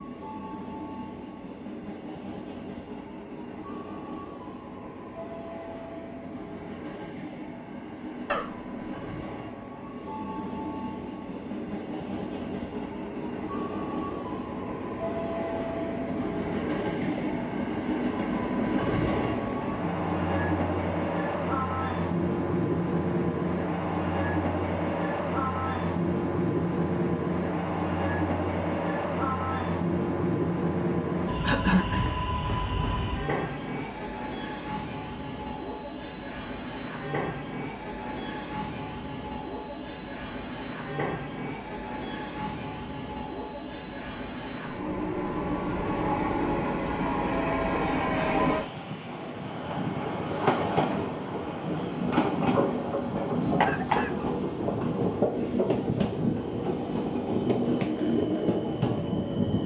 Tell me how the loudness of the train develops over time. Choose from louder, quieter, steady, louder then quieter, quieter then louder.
louder.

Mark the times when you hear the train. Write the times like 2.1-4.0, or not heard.
0.0-59.6.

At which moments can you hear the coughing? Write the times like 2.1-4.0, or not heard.
8.2-8.9, 31.4-32.1, 53.6-54.1.